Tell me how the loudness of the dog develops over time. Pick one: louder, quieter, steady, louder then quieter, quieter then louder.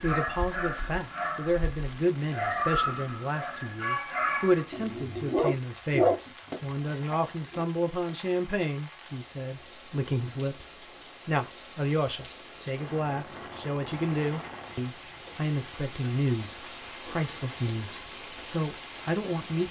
louder.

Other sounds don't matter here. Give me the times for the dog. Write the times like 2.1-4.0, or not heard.
0.0-7.7.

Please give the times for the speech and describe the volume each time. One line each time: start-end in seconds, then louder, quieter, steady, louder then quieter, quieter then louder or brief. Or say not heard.
0.0-19.6 steady.